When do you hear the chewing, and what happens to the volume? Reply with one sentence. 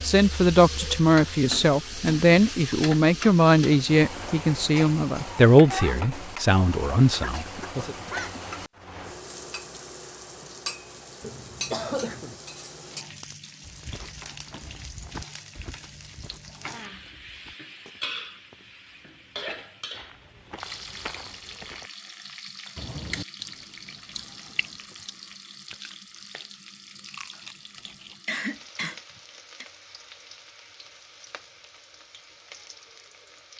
The chewing can be heard from 22.8 to 28.1 s, getting quieter then louder.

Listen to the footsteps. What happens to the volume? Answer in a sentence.
The loudness of the footsteps goes down, then up.